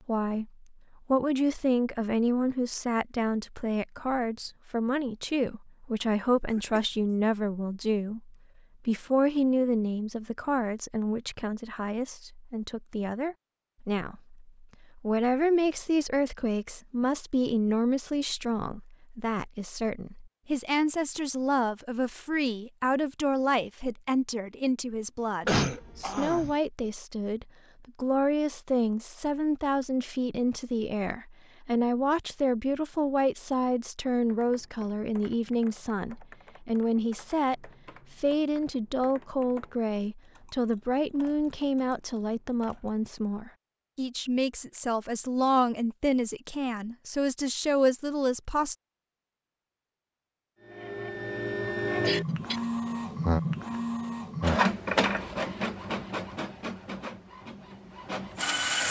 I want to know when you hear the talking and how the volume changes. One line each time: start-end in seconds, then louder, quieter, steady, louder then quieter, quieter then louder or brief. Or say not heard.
0.1-48.8 steady.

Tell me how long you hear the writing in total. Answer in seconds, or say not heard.
not heard.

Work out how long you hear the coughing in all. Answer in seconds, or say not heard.
2 s.